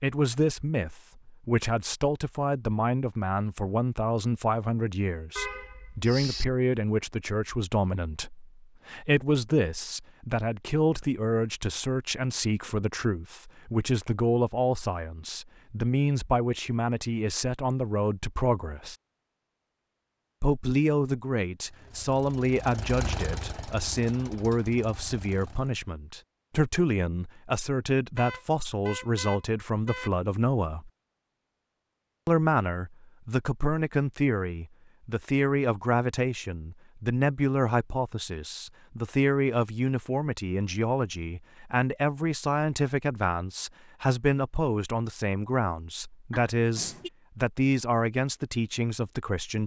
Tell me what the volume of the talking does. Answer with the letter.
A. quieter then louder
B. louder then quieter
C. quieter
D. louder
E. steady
E.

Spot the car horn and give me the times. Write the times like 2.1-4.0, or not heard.
5.3-6.5, 28.1-30.1, 46.3-47.1.